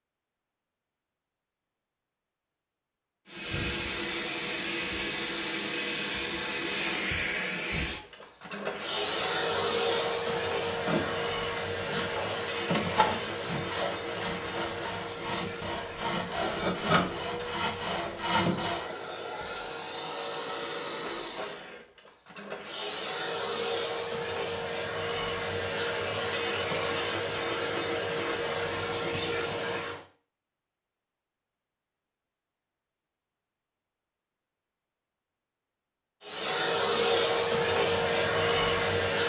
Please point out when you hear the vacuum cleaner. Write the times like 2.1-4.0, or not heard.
3.2-30.1, 36.2-39.2.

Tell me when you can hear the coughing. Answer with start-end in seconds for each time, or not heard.
not heard.